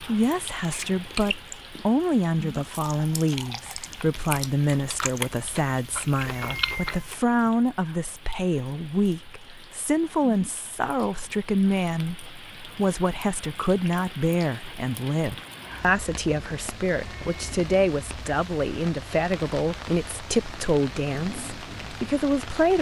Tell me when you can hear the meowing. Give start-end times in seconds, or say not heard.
6.3-7.1, 16.9-17.6.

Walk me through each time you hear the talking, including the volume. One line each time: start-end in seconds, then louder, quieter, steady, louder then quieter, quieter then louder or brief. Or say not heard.
0.0-22.7 steady.